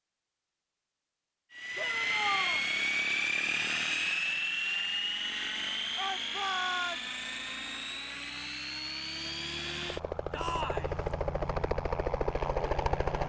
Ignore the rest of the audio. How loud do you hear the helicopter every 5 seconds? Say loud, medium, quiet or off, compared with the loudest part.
loud, medium, loud.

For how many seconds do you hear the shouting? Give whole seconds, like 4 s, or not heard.
3 s.